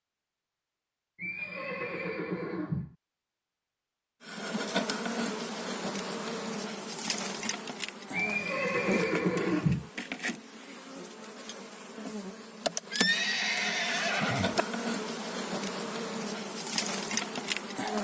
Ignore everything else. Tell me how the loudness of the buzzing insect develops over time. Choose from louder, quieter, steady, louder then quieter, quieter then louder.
quieter then louder.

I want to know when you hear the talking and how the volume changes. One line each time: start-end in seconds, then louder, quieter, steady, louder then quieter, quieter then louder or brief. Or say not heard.
not heard.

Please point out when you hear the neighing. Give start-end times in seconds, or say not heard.
1.1-3.0, 8.1-9.9, 12.9-14.7.